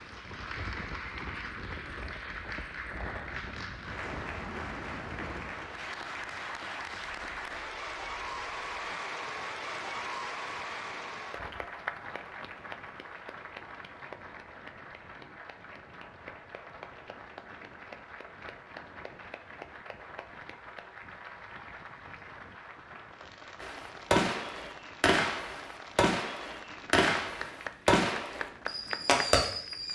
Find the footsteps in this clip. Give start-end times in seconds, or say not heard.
not heard.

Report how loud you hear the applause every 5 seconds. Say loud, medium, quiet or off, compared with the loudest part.
loud, loud, loud, medium, medium, medium.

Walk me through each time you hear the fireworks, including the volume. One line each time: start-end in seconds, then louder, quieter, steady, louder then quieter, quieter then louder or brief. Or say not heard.
23.6-29.9 steady.